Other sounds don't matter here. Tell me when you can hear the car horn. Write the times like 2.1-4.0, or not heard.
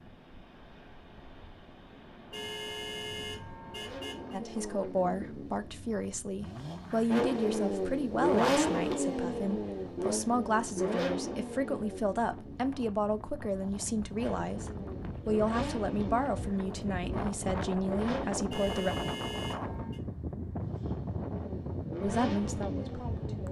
2.3-4.4, 18.5-20.0.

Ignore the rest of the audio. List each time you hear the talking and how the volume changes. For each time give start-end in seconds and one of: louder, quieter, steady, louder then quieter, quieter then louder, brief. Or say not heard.
4.3-18.9 steady
22.0-23.4 brief.